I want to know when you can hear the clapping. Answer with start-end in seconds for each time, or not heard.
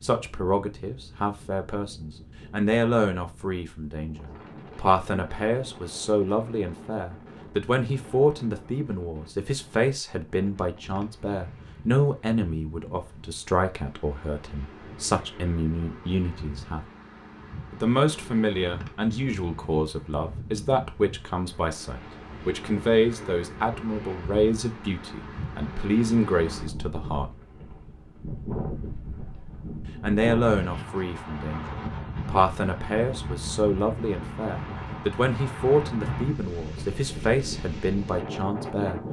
not heard.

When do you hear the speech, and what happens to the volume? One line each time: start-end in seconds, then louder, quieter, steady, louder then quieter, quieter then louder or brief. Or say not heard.
0.0-16.9 steady
17.7-27.4 steady
30.0-39.0 steady.